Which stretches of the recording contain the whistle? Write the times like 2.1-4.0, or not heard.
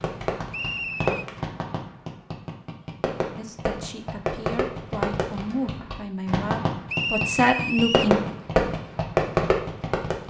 0.5-1.2, 6.8-8.2.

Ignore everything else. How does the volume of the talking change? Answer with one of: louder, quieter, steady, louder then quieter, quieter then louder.
louder.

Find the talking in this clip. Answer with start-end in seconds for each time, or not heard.
3.4-8.2.